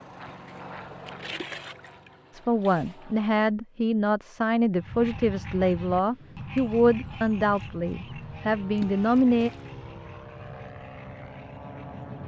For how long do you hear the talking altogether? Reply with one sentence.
The talking can be heard for 7 seconds in total.